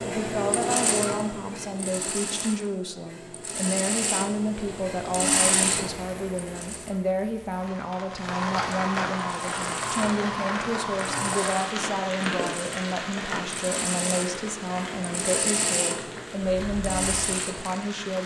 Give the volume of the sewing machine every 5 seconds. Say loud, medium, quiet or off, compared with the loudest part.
loud, loud, medium, loud.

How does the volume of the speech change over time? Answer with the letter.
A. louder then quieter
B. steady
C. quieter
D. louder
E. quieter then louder
B.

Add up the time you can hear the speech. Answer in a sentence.
You can hear the speech for 18 seconds altogether.